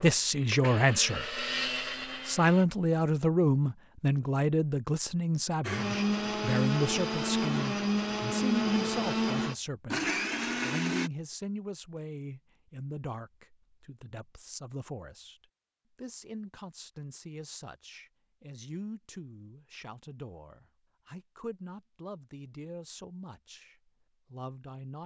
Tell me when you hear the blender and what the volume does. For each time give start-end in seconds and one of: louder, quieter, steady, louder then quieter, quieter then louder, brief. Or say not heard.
0.0-2.6 brief
5.6-11.1 steady.